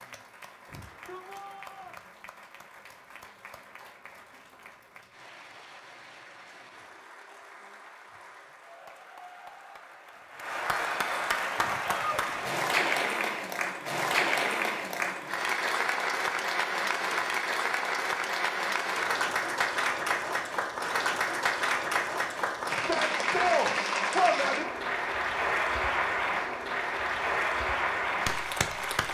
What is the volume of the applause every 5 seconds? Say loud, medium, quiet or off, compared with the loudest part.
quiet, quiet, loud, loud, loud, loud.